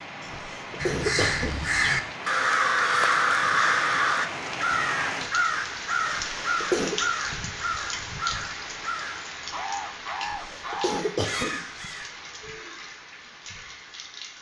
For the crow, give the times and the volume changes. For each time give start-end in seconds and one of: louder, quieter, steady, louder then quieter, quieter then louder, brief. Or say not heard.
0.8-12.1 quieter.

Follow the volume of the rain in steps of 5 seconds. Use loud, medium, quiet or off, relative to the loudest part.
loud, loud, medium.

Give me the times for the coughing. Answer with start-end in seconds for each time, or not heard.
0.2-1.6, 6.0-7.0, 10.2-11.9.